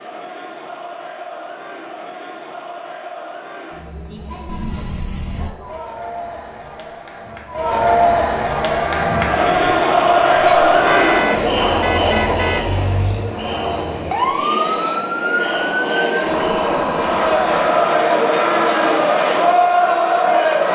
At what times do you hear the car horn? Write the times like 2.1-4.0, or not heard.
4.5-5.5, 10.4-12.7.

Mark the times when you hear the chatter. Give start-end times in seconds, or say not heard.
0.0-20.7.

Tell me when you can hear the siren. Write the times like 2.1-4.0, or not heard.
8.6-18.0.